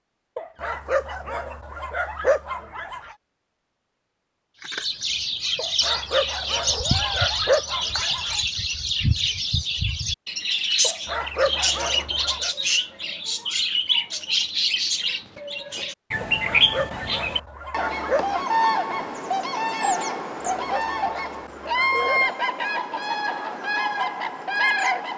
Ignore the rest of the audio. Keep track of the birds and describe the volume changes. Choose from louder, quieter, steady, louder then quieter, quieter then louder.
steady.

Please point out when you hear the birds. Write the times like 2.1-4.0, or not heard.
4.6-25.1.